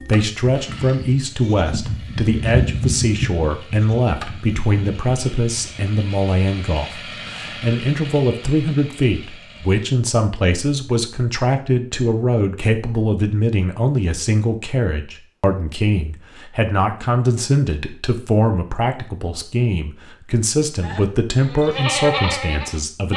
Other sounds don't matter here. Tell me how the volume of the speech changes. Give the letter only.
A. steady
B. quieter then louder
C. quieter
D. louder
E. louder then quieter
A.